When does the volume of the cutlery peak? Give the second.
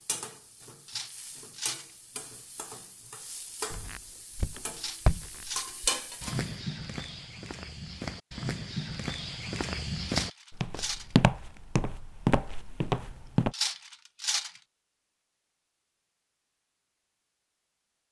14 s.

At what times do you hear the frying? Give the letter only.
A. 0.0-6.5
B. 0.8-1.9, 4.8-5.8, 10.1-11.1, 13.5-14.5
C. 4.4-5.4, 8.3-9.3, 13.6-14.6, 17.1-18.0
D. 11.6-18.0
A.